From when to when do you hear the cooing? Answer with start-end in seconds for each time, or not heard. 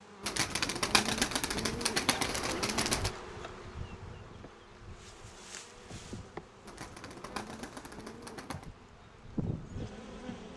0.2-3.1, 6.7-8.7.